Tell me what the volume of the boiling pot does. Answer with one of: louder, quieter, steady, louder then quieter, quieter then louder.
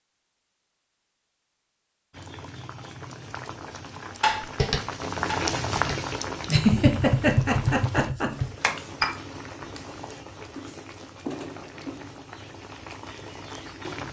louder then quieter.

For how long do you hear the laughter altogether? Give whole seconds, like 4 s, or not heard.
2 s.